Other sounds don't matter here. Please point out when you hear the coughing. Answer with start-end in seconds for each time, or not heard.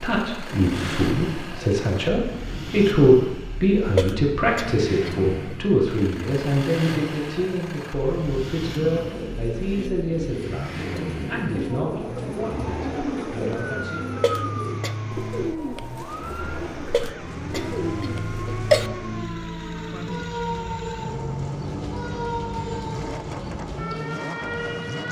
3.9-5.5, 14.2-14.9, 16.9-18.9.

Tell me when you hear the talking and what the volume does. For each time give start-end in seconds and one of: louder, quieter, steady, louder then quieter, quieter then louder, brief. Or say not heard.
0.0-14.0 quieter.